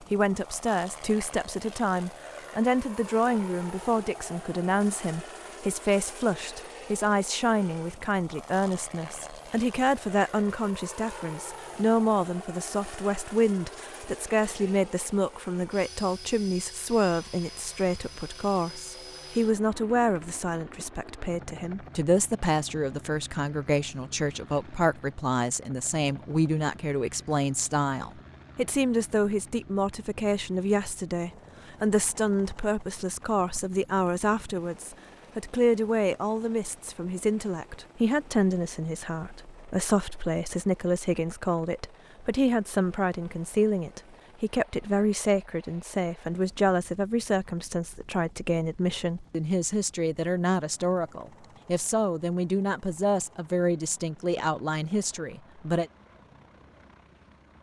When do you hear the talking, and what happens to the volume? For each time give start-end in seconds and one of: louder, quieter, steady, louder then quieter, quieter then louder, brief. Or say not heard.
0.1-55.9 steady.